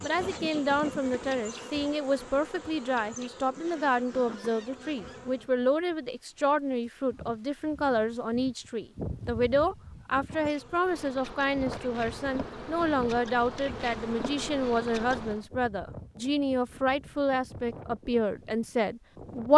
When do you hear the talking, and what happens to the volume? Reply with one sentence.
The talking can be heard from 0.0 to 19.5 s, at a steady volume.